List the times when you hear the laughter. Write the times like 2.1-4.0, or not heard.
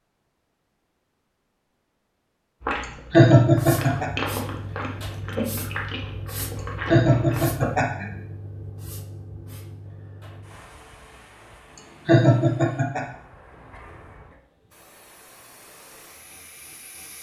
3.1-4.1, 6.8-8.1, 12.1-13.1.